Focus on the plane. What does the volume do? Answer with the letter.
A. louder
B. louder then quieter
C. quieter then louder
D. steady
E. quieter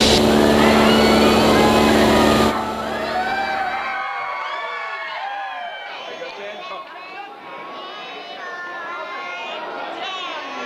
E.